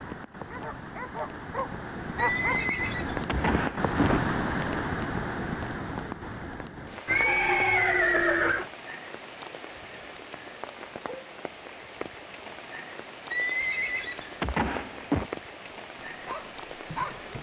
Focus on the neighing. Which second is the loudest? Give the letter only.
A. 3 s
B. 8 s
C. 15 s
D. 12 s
B.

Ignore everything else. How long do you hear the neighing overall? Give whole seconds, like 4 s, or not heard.
6 s.